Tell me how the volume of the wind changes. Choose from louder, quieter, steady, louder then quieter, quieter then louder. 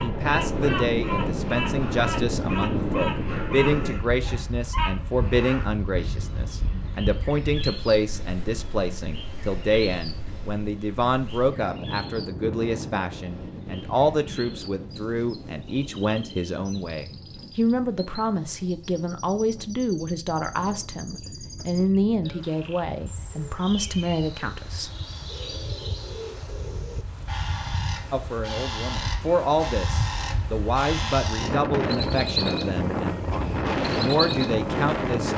quieter then louder.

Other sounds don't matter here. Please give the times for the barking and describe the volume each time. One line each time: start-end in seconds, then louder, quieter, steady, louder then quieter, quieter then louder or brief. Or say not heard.
not heard.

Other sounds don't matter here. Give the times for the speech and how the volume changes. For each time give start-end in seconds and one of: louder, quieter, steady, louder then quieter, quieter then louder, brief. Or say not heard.
0.0-24.9 steady
28.1-35.3 quieter then louder.